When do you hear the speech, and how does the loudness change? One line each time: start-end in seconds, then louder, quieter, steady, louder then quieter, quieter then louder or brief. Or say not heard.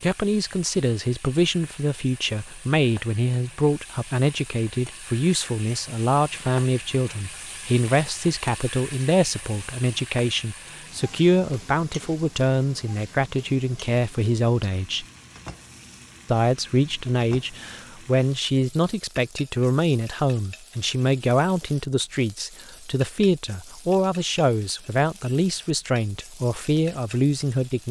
0.0-15.1 steady
16.2-27.8 steady.